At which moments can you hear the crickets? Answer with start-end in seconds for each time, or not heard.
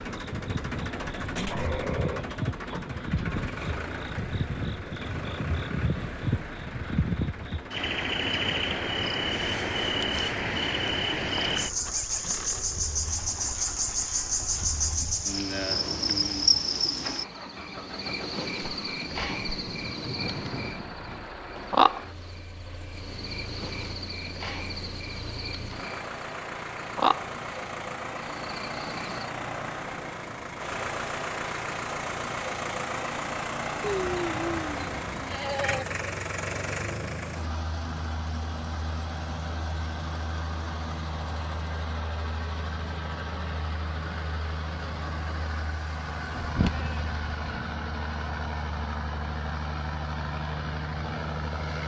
0.0-29.3.